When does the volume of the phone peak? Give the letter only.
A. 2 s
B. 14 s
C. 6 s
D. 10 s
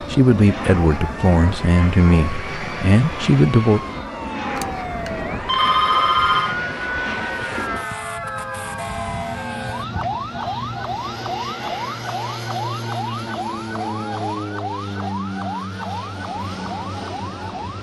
C.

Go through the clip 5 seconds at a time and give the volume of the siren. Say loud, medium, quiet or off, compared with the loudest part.
medium, loud, loud, loud.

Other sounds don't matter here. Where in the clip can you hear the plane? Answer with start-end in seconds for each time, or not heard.
0.0-17.7.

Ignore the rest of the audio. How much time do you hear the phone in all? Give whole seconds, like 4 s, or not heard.
2 s.